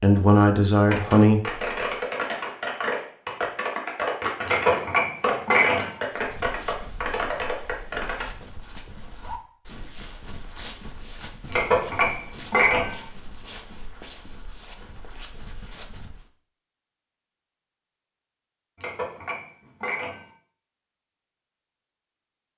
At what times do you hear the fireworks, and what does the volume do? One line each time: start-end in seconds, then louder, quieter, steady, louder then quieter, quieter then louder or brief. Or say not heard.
0.8-8.2 steady.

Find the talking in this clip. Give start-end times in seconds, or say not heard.
0.0-1.6.